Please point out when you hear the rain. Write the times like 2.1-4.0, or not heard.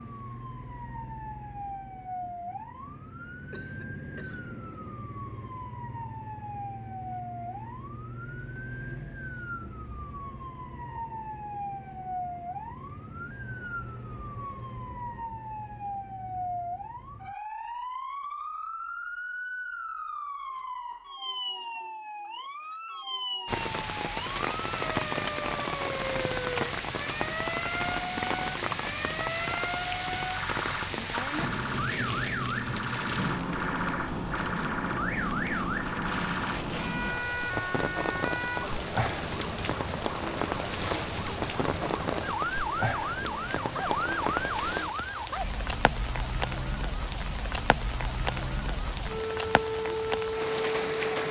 23.4-51.2.